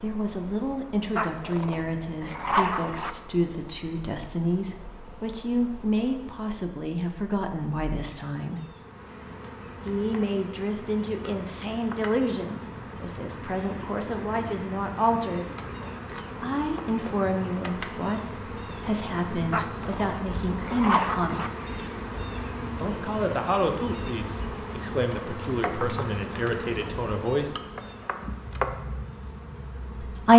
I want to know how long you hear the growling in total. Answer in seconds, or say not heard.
4 s.